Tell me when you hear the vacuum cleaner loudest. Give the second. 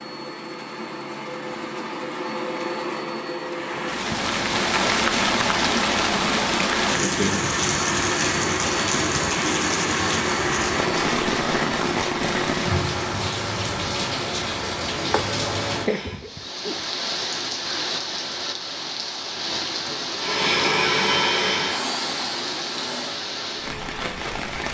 21 s.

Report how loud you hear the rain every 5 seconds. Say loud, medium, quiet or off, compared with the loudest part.
loud, loud, loud, medium, medium.